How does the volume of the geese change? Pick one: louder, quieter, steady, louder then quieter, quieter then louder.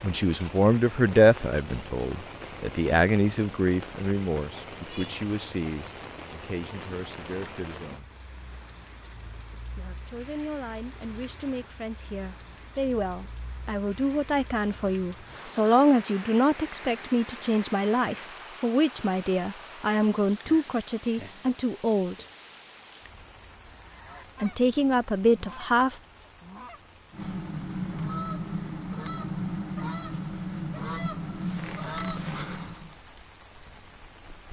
louder.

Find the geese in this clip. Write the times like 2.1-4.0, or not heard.
23.8-33.0.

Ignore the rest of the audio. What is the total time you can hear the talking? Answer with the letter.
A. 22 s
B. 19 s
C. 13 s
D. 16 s
A.